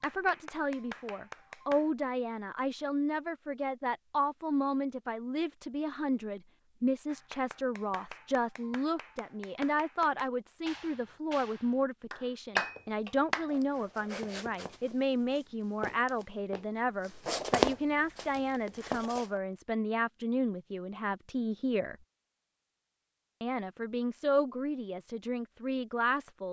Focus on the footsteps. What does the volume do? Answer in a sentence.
The volume of the footsteps goes up, then down.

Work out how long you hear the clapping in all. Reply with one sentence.
The clapping can be heard for 8 seconds in total.